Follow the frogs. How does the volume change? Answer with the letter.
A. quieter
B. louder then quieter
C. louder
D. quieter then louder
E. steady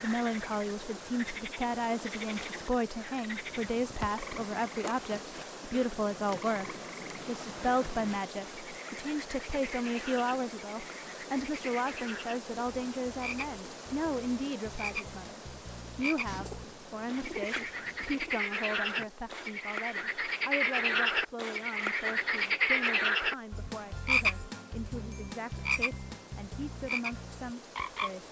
C.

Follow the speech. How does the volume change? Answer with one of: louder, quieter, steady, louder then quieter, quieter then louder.
quieter.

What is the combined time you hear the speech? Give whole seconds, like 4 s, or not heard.
28 s.